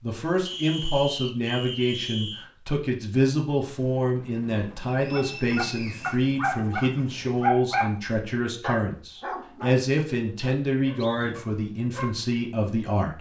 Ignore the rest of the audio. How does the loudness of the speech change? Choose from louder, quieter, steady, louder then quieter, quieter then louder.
steady.